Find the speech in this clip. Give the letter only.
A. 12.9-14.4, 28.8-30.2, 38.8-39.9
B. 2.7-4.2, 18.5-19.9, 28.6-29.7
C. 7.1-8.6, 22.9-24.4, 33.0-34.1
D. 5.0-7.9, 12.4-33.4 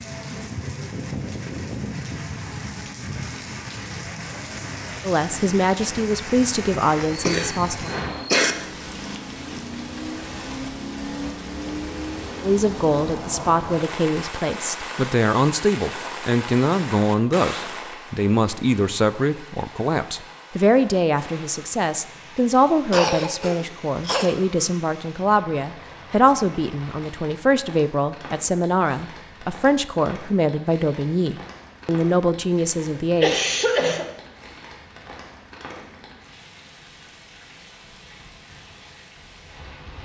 D.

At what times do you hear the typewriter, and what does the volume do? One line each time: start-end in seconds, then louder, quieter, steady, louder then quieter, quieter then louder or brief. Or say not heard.
not heard.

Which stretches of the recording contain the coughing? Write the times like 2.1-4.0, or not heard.
7.1-8.6, 22.9-24.4, 33.0-34.1.